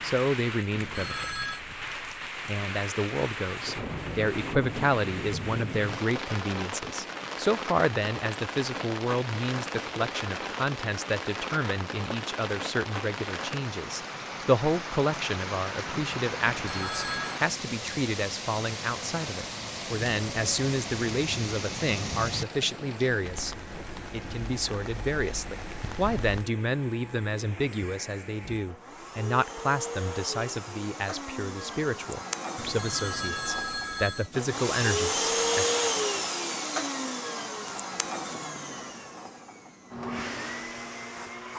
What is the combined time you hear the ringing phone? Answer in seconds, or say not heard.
3 s.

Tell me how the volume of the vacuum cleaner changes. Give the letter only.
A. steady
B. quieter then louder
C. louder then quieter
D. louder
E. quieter
C.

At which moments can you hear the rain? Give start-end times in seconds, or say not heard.
0.0-26.5.